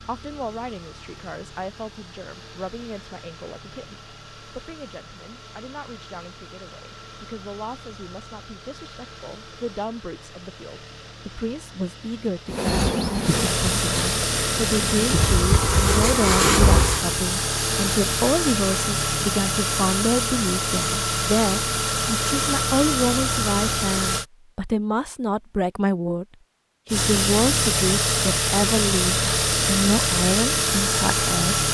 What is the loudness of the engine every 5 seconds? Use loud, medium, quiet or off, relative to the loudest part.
quiet, quiet, medium, loud, loud, loud, loud.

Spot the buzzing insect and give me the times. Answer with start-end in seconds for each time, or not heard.
12.5-17.1.